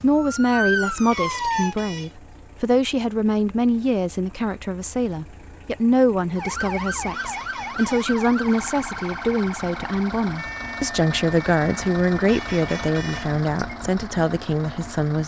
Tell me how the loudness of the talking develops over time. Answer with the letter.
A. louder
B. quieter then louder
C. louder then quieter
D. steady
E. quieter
D.